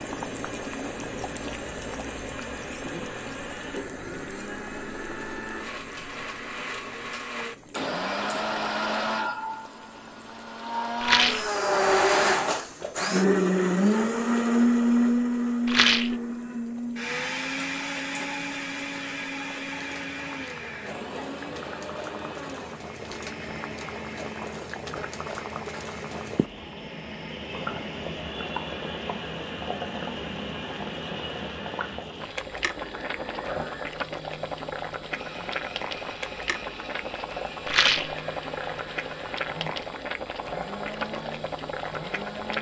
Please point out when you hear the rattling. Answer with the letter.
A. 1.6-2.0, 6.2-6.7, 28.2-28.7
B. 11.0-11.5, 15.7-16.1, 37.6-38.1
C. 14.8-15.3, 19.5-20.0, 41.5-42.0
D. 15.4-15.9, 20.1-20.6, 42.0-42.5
B.